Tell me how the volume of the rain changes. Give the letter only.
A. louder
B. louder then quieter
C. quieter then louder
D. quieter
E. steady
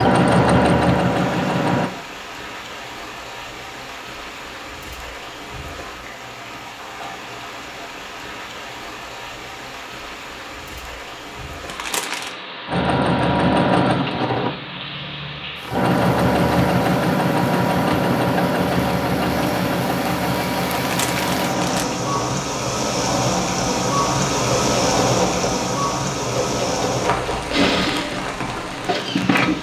A.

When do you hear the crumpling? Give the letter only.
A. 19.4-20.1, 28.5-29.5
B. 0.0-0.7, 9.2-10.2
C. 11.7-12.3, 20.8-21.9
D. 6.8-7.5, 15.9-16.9
C.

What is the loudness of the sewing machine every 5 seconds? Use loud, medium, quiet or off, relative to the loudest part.
loud, off, loud, loud, medium, medium.